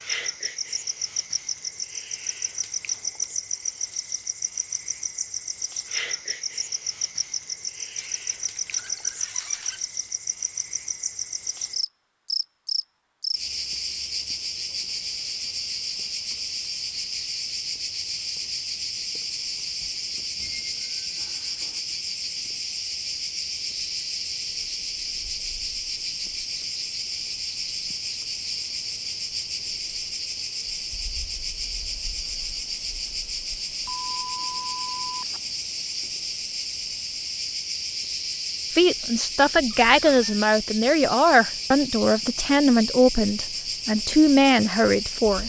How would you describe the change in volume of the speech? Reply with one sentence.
The loudness of the speech stays about the same.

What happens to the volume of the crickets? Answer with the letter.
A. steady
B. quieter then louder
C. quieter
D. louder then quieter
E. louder
A.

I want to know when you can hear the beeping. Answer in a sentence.
The beeping can be heard from 33.9 to 35.4 s.